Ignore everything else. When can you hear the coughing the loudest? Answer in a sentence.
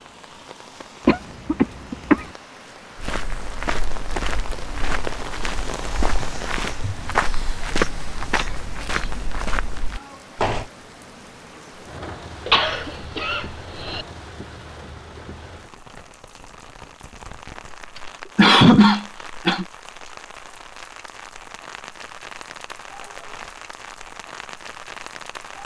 The loudest moment of the coughing is at 19 seconds.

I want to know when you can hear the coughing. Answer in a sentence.
You can hear the coughing from 1.1 to 2.2 s, from 12.4 to 14.1 s and from 17.9 to 19.6 s.